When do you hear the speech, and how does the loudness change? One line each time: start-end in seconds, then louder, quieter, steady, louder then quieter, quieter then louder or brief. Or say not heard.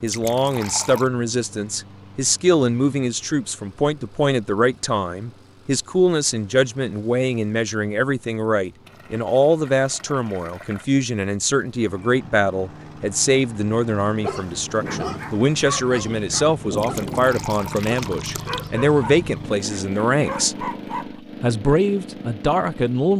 0.0-20.6 steady
21.4-23.1 brief.